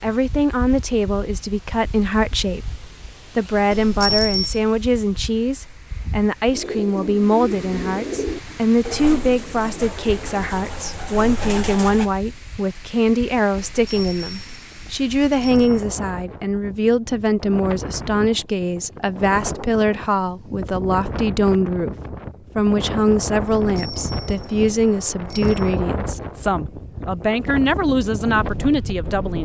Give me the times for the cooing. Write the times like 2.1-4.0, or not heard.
6.5-12.1.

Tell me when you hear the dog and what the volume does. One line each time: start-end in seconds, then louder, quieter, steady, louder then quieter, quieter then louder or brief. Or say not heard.
not heard.